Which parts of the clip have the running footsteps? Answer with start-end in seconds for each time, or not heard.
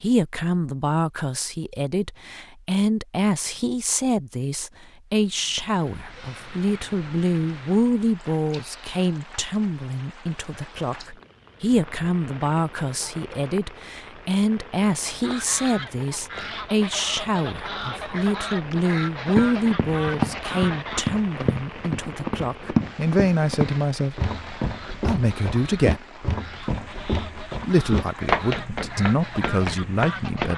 19.2-30.5.